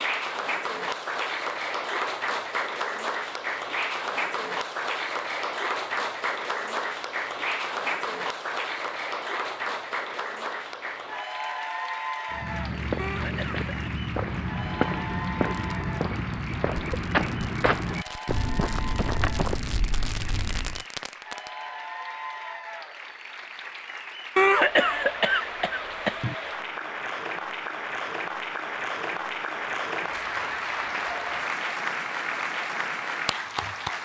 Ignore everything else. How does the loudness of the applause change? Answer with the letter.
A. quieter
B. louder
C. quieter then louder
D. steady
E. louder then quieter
C.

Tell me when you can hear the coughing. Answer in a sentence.
The coughing can be heard from 12.9 to 13.9 s and from 24.4 to 26.4 s.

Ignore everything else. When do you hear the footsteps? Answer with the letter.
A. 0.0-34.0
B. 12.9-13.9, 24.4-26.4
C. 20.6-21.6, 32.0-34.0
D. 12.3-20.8
D.